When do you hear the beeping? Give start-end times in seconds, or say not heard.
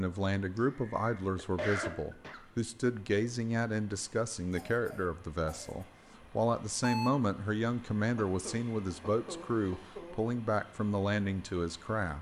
6.2-7.1.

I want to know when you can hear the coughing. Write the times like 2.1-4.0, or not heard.
0.6-2.4, 4.5-5.8, 8.2-10.2.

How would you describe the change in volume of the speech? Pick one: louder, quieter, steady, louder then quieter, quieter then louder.
steady.